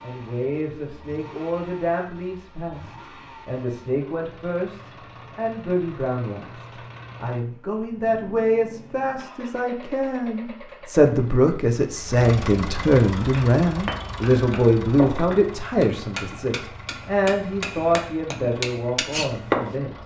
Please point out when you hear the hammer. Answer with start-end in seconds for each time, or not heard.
13.2-19.8.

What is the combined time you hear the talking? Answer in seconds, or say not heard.
20 s.